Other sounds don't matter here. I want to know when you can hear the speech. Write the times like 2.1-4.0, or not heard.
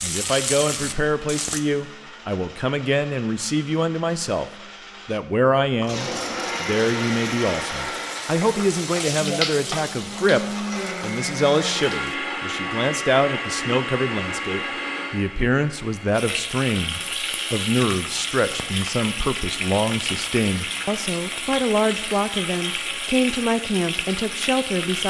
0.0-4.5, 5.0-25.0.